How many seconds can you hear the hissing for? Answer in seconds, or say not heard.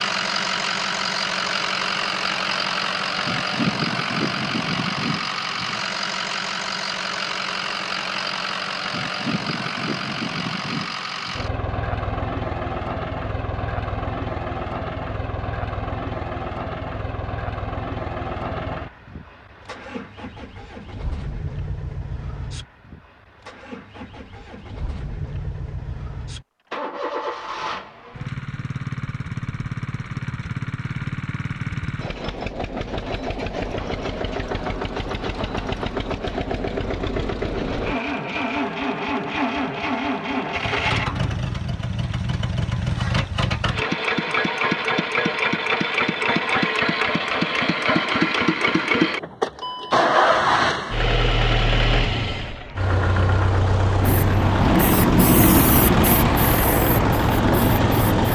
4 s.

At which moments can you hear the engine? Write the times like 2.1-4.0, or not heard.
0.0-58.2.